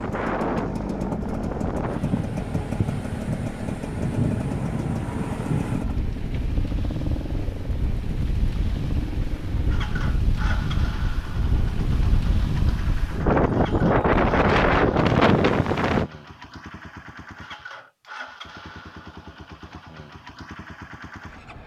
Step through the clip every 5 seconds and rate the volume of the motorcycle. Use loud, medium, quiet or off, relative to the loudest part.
loud, loud, medium, medium, medium.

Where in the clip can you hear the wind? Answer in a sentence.
You can hear the wind from 0.0 to 16.1 s.